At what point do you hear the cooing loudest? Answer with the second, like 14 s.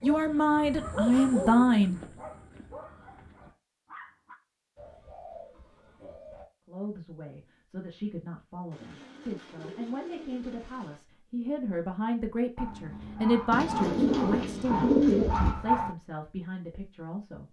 15 s.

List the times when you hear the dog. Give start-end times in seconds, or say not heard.
0.0-4.3, 12.6-15.9.